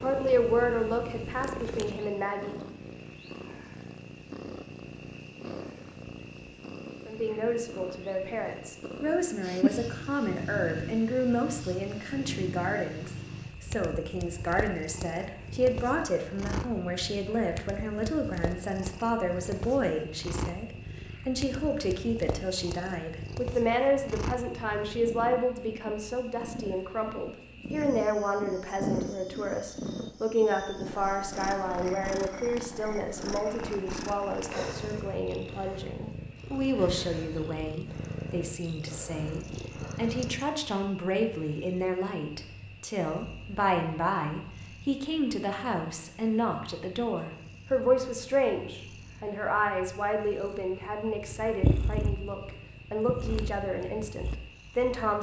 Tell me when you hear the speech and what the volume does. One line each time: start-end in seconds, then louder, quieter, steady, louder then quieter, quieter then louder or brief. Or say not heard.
0.0-2.6 brief
7.0-55.1 steady.